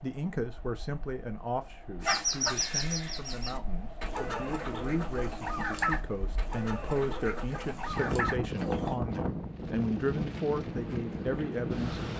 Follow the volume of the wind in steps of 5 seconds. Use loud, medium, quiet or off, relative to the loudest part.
quiet, loud, loud.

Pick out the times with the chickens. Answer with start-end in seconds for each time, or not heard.
2.0-8.9.